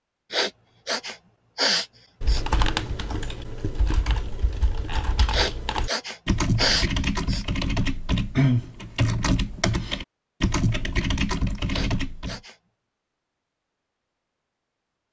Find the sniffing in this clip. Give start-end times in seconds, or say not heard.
0.3-2.5, 5.3-7.5, 11.7-12.6.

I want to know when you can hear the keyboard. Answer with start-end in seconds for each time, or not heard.
2.2-12.4.